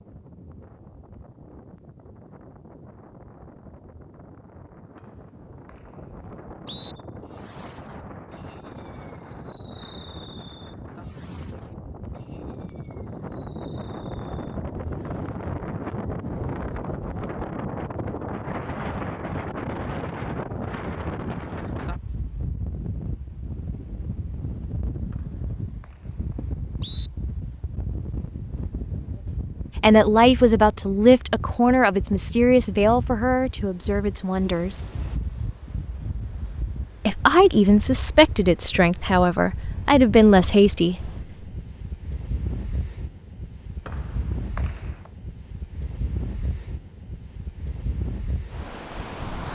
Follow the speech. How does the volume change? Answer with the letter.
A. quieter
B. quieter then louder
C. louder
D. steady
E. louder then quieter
B.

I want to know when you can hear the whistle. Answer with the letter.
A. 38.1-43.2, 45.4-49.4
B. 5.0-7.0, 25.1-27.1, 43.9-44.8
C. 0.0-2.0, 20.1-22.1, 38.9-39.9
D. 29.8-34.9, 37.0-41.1
B.